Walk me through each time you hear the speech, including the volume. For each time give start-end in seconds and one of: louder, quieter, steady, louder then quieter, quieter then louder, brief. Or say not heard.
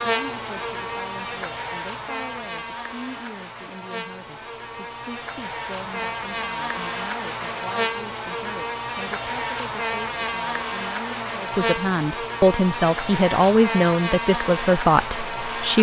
0.0-15.7 louder.